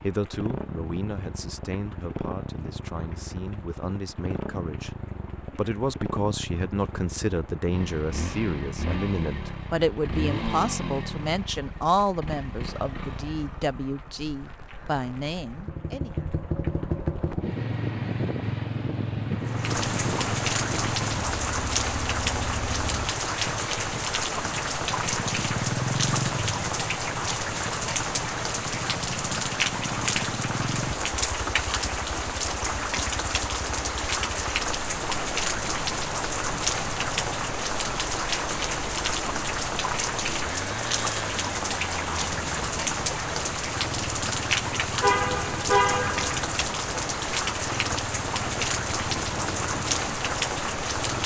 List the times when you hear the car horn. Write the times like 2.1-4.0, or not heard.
45.0-46.3.